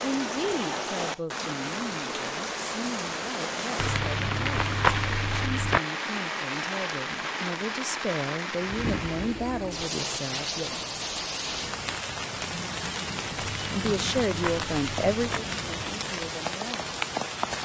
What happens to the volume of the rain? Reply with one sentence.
The loudness of the rain stays about the same.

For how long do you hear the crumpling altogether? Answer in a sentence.
The crumpling can be heard for 4 seconds in total.